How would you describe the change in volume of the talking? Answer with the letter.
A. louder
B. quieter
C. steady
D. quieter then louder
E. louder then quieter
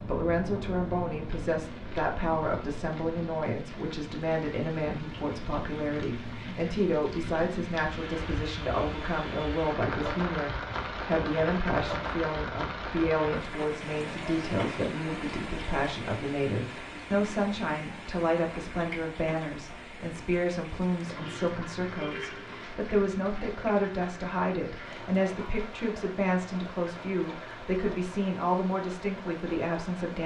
C.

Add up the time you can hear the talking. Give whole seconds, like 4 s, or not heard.
30 s.